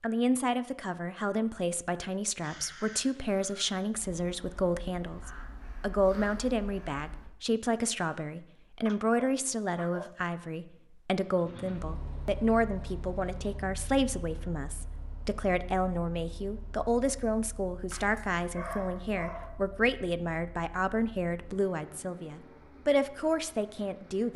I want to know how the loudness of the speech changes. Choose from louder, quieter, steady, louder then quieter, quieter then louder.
steady.